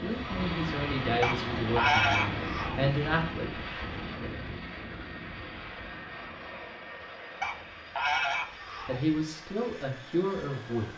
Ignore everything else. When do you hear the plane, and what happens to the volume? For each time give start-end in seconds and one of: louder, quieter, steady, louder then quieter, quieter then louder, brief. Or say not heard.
0.0-10.9 quieter.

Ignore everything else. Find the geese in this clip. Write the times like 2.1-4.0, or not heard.
1.2-3.0, 7.4-9.1.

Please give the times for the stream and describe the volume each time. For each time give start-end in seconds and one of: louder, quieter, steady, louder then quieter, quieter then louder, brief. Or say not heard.
not heard.